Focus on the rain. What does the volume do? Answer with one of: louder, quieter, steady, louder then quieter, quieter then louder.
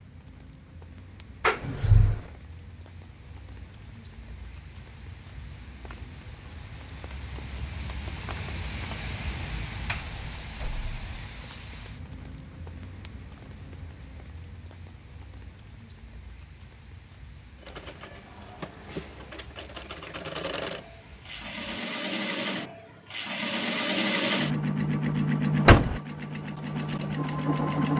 louder then quieter.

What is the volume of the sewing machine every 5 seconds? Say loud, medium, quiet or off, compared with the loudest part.
off, off, off, quiet, loud, loud.